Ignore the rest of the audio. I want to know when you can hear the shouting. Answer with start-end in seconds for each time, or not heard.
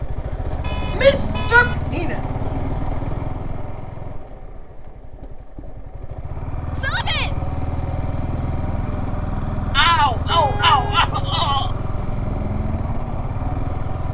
0.9-2.1, 6.8-7.3, 9.8-11.7.